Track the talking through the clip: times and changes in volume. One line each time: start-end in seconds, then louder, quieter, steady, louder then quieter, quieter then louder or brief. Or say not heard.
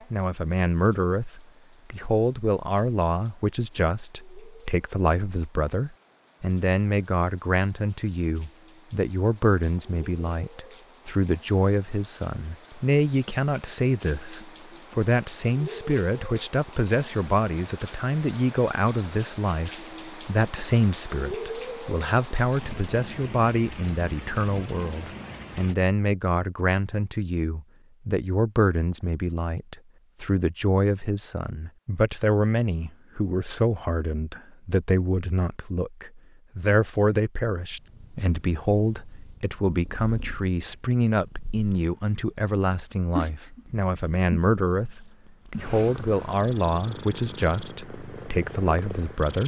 0.1-49.4 steady.